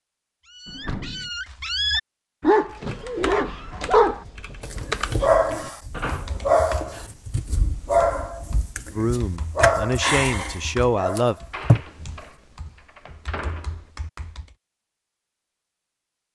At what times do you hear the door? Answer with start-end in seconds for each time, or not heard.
0.7-1.3, 5.9-7.2, 11.3-13.8.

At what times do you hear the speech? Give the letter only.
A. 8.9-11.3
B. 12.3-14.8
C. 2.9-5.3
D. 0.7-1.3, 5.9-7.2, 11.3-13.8
A.